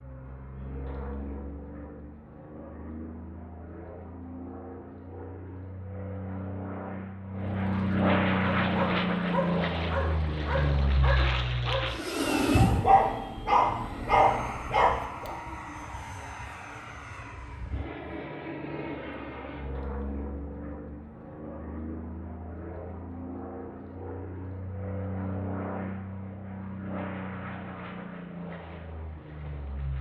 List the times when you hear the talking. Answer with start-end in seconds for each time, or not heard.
not heard.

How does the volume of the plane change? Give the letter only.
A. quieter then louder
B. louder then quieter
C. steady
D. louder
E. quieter
B.